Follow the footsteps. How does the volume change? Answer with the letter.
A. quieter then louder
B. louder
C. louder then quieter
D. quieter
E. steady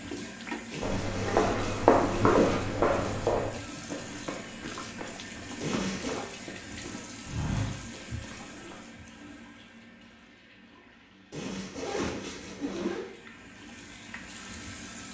A.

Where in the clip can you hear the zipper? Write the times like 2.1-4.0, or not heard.
0.7-2.6, 5.6-6.2, 11.3-13.1.